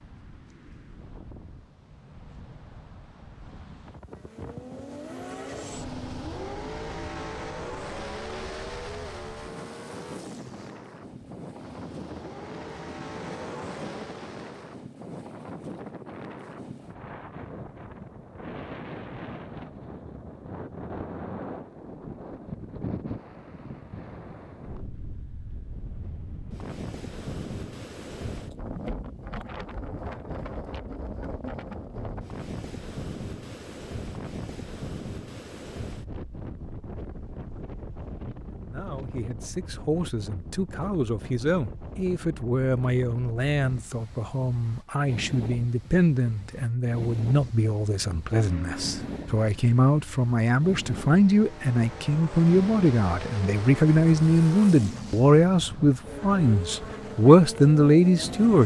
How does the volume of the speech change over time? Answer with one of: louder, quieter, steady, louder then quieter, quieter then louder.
louder.